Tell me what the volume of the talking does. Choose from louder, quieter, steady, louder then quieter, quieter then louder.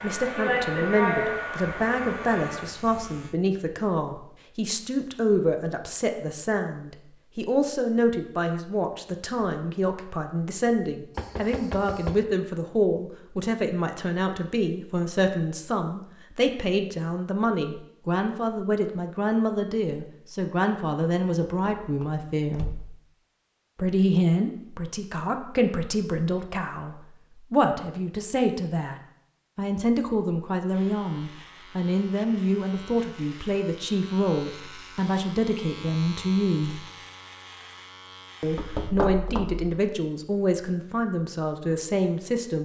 steady.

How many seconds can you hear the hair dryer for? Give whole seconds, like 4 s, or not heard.
3 s.